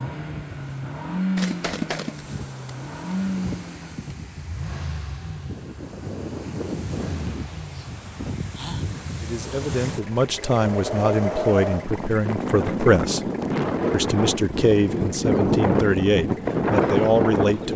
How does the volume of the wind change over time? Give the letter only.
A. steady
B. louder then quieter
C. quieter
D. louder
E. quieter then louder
D.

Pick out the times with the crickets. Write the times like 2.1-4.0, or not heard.
not heard.